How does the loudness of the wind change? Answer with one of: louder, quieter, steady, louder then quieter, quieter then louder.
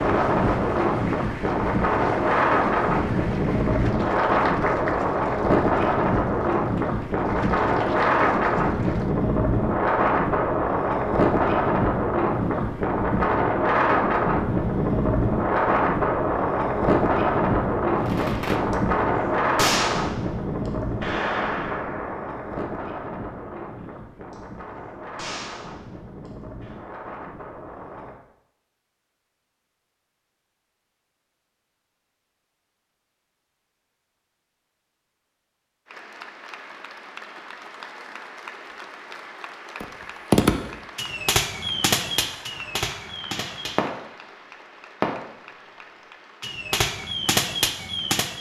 quieter.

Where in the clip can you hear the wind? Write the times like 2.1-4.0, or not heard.
0.0-28.1.